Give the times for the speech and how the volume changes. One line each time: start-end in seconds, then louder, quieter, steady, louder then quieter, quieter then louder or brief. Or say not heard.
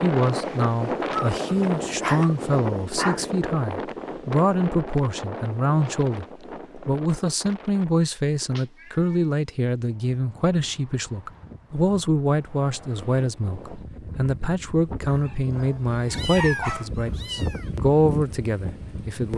0.0-19.3 steady.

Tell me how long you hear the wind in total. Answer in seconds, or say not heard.
19 s.